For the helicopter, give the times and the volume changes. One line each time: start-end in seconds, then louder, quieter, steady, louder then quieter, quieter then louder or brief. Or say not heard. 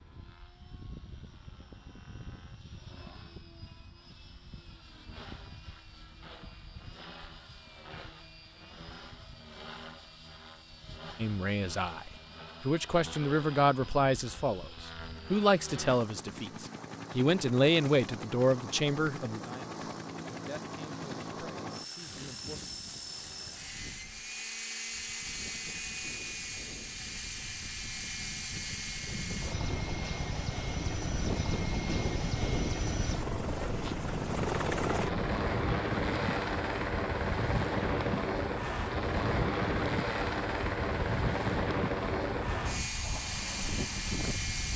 0.0-44.7 louder.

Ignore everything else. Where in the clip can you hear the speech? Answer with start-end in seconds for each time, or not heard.
11.2-22.6.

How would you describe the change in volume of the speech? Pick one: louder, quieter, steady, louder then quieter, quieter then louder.
quieter.